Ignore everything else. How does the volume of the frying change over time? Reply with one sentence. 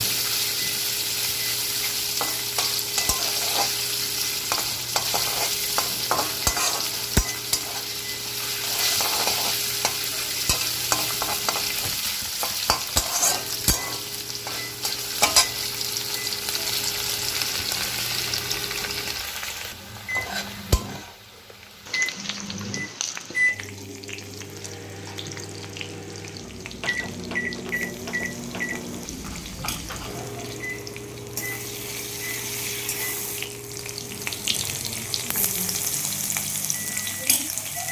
The volume of the frying goes down, then up.